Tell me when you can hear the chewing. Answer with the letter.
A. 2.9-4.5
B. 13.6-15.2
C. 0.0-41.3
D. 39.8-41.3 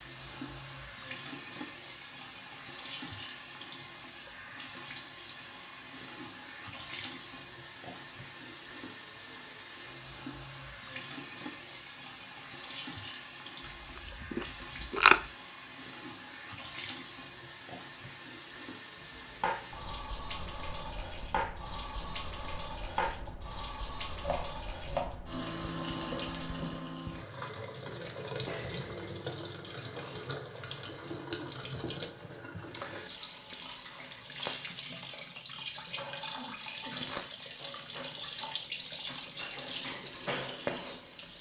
B.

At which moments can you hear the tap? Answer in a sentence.
The tap can be heard from 0.0 to 41.3 s.